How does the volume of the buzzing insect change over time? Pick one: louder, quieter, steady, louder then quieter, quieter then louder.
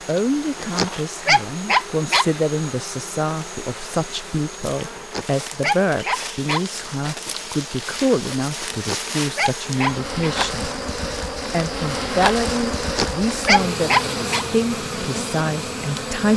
louder.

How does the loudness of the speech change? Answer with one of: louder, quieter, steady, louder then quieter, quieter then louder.
steady.